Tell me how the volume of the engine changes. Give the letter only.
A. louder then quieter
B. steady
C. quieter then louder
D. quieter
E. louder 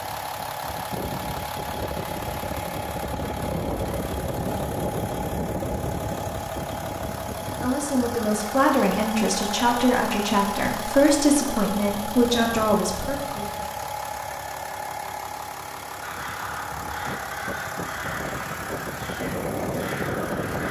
B.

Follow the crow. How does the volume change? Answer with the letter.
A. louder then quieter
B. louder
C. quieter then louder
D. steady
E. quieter
D.